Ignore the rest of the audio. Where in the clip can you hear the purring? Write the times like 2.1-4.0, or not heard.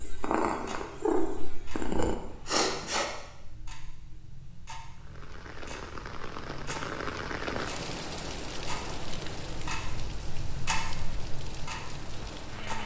0.0-2.1.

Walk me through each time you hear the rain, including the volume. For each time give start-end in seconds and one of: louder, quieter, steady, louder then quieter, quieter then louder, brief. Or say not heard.
5.0-12.8 louder then quieter.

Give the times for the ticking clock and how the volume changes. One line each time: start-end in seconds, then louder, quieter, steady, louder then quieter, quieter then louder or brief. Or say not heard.
0.0-12.8 louder.